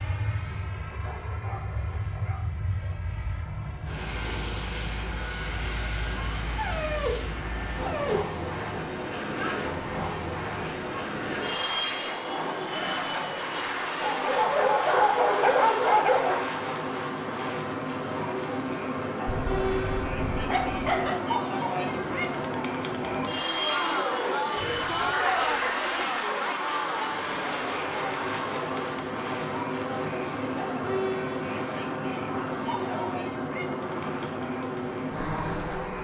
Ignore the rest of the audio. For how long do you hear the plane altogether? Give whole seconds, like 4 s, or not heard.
36 s.